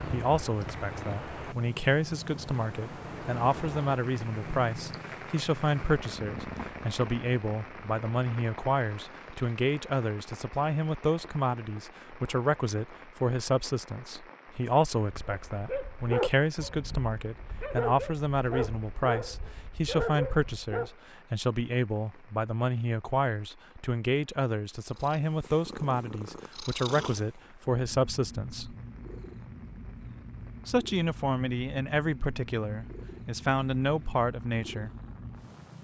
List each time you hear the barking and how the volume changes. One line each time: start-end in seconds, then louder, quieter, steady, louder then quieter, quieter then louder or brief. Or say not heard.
15.1-20.9 quieter then louder.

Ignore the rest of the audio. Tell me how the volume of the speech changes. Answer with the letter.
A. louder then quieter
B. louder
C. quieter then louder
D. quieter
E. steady
E.